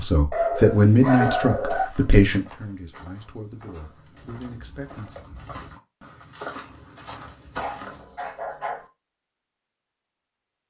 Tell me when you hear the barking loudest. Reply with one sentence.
The volume of the barking peaks at 1 second.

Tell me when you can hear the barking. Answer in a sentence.
You can hear the barking from 0.3 to 1.9 s and from 7.5 to 8.9 s.